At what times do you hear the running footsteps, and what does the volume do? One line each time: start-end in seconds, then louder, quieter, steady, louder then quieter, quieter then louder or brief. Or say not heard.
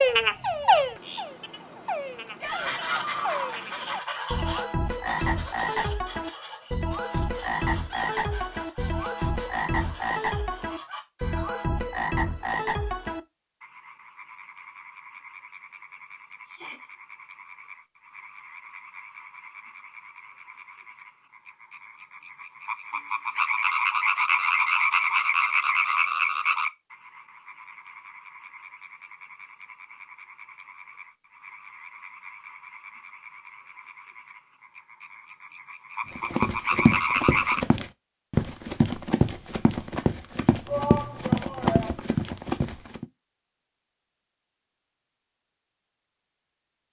36.1-43.0 steady.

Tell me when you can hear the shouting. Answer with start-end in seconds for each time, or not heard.
2.4-3.6, 16.4-16.9, 40.6-41.9.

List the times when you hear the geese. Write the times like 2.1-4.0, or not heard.
2.5-11.6.